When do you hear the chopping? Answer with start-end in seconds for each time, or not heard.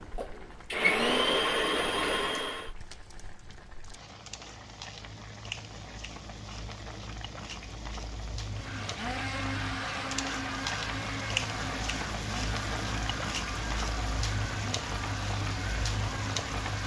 not heard.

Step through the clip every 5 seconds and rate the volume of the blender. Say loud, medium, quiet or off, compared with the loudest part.
loud, medium, medium, medium.